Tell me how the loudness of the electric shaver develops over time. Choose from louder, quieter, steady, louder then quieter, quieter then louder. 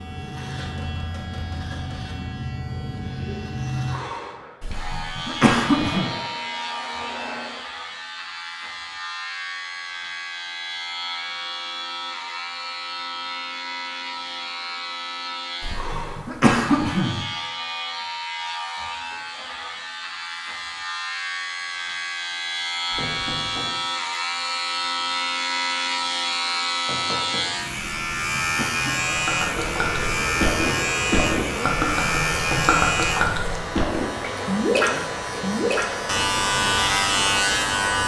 louder.